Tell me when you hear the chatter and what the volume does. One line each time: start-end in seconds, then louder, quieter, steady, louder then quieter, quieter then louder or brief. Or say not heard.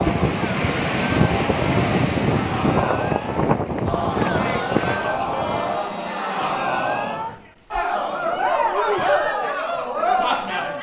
0.0-10.7 louder.